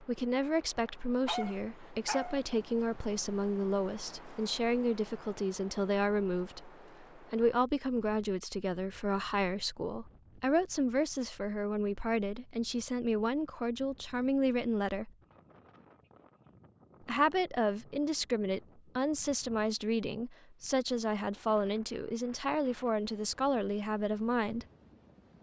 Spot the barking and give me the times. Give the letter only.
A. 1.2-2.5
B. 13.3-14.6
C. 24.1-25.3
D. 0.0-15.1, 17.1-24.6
A.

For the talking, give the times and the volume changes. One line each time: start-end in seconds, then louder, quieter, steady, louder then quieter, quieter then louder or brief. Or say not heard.
0.0-15.1 steady
17.1-24.6 steady.